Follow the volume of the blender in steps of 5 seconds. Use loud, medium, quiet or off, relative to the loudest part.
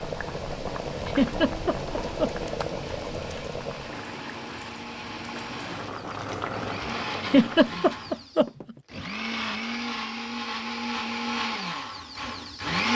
quiet, medium, loud.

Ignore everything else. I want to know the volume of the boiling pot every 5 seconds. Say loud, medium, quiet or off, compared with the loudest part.
loud, loud, off.